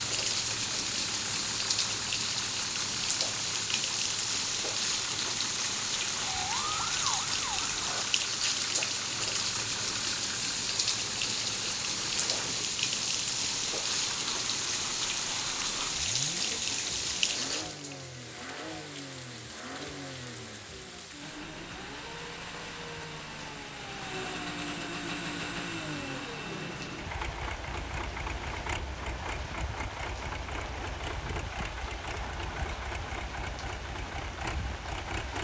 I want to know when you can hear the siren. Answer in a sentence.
The siren can be heard from 6.2 to 8.1 s.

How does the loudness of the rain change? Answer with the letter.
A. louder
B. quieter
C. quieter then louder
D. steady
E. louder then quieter
B.